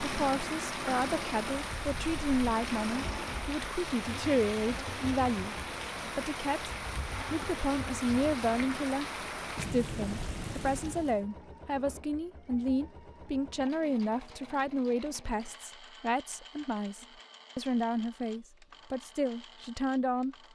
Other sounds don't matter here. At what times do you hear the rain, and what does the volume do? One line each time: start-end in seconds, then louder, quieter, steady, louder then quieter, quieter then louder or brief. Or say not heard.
0.0-11.2 steady.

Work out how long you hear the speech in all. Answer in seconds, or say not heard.
19 s.